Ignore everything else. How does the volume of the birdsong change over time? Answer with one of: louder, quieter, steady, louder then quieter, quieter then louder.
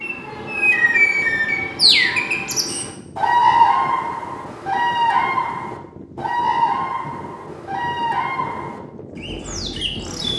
quieter.